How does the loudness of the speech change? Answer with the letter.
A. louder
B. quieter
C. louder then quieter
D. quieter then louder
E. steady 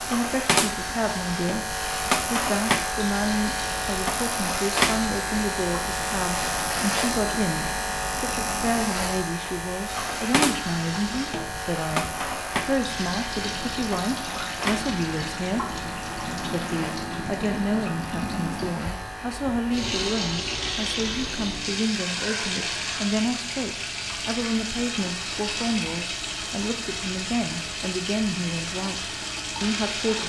E.